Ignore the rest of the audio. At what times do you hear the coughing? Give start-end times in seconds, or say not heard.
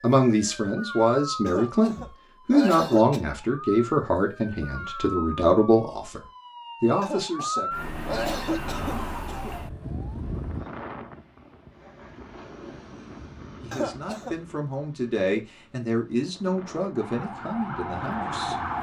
1.4-3.2, 7.0-9.6, 13.7-14.3.